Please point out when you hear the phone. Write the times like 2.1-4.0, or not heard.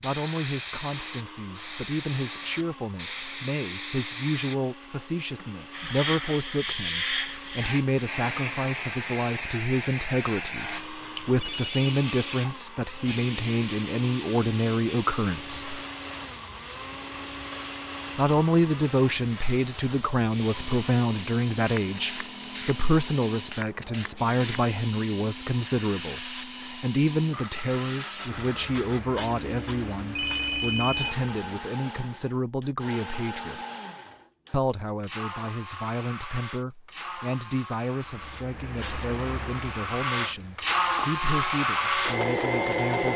11.4-12.0, 30.1-31.1.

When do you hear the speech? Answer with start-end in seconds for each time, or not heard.
0.0-15.8, 18.1-33.6, 34.5-43.1.